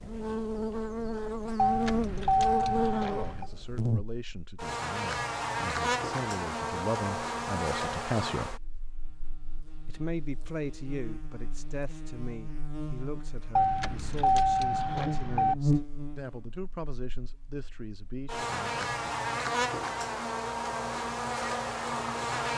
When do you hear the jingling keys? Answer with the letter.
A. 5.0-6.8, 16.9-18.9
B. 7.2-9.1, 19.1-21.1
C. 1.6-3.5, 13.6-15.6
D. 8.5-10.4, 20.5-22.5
C.